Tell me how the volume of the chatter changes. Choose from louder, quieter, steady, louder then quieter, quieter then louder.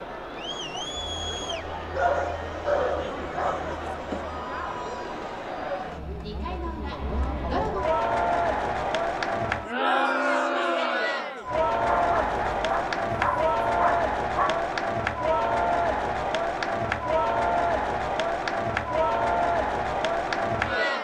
louder.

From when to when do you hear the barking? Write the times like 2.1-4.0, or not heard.
1.9-3.5, 11.8-14.6.